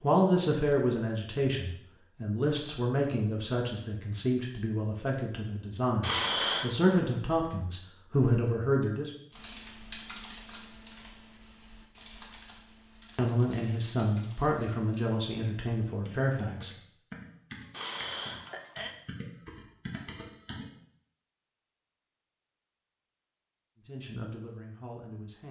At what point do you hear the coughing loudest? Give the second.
6 s.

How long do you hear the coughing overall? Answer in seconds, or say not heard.
2 s.